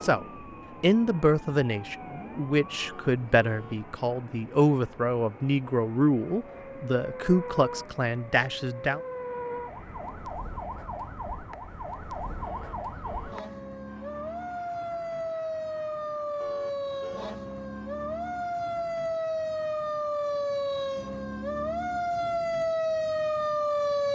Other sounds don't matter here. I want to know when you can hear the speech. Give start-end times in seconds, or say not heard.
0.0-9.0.